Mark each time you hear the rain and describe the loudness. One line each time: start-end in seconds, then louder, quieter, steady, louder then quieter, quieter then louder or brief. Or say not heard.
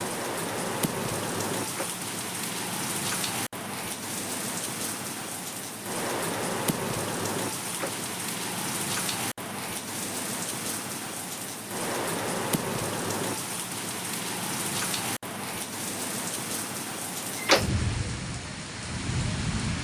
0.0-19.7 steady.